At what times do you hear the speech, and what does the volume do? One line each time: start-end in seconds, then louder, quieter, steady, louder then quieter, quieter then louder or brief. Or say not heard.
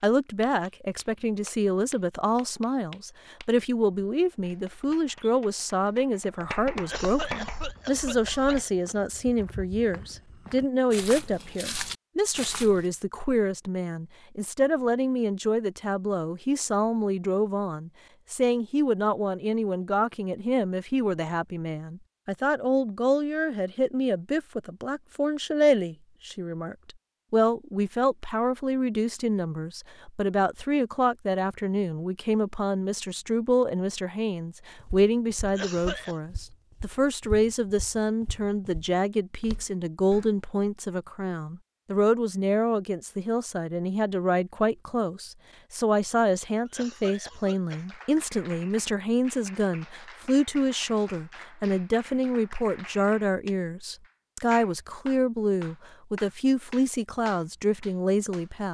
0.0-58.6 steady.